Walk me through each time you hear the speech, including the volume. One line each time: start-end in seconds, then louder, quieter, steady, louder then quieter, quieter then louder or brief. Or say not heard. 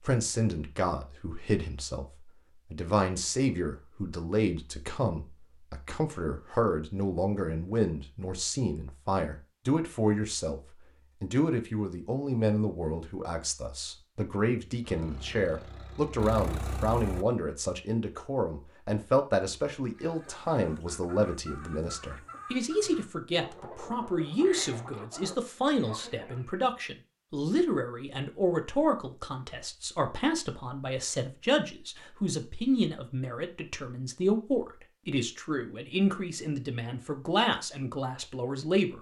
0.0-10.6 steady
11.2-38.9 steady.